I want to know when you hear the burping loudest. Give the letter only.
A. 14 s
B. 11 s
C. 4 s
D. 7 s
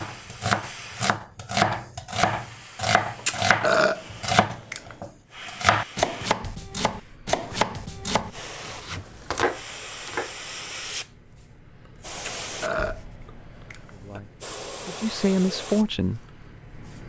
C.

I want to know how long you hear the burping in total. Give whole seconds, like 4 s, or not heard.
4 s.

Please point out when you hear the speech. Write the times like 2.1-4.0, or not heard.
13.9-16.2.